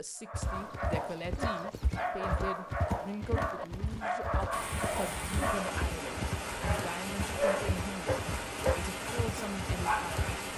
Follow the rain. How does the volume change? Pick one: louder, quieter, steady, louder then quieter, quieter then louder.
steady.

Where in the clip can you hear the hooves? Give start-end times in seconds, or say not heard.
0.3-10.4.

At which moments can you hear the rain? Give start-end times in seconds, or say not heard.
4.5-10.5.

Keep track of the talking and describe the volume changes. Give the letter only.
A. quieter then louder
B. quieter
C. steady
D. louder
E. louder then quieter
C.